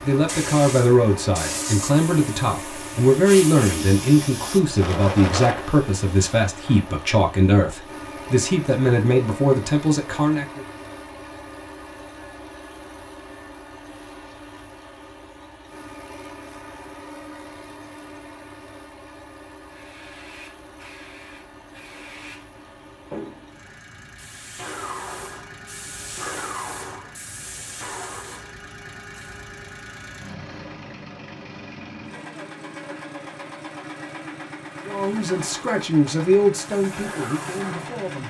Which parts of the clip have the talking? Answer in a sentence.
You can hear the talking from 0.0 to 10.7 s and from 34.9 to 38.2 s.